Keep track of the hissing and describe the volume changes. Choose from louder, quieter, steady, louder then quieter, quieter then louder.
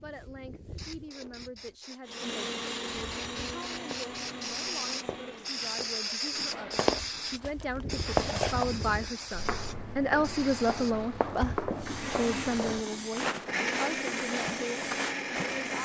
louder then quieter.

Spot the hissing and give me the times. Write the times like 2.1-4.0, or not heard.
0.0-15.8.